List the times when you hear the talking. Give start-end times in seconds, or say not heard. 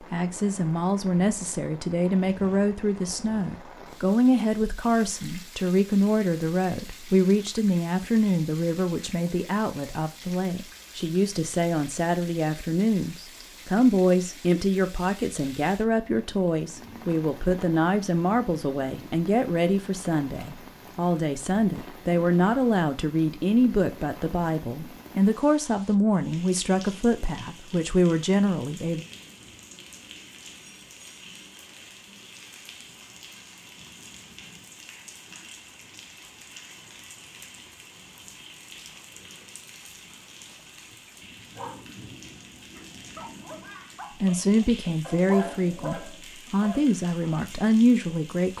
0.1-29.1, 44.2-48.5.